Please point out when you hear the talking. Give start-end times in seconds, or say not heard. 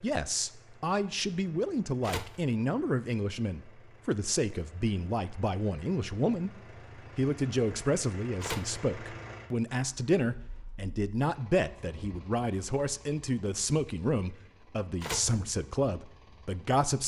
0.0-17.0.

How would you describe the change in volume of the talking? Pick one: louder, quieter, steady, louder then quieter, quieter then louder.
steady.